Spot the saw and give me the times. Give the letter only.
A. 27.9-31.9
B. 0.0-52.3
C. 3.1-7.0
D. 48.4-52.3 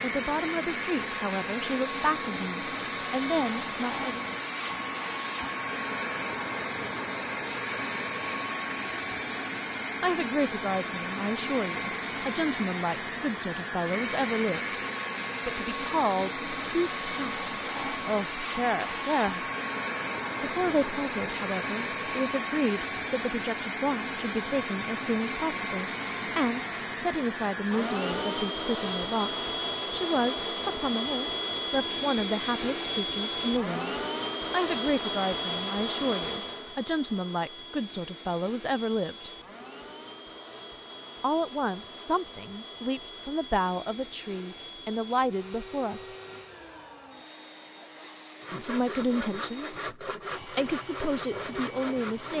D.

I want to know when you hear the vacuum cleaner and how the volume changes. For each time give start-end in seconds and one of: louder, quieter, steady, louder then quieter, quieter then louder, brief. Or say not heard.
0.0-52.3 quieter.